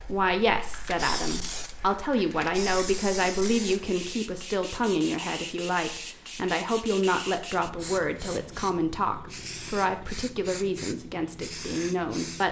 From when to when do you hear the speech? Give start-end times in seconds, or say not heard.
0.1-12.4.